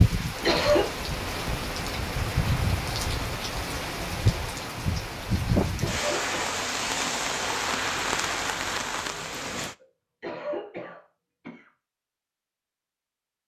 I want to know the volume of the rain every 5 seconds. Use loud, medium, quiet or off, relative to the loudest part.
loud, loud, off.